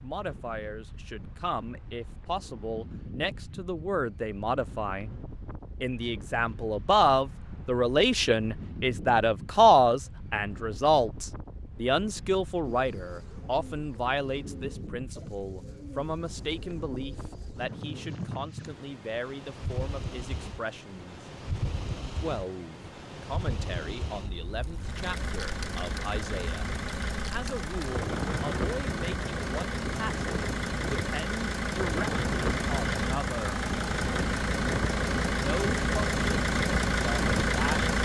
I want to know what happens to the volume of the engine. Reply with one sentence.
The volume of the engine goes up.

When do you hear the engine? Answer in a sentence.
You can hear the engine from 24.8 to 37.9 s.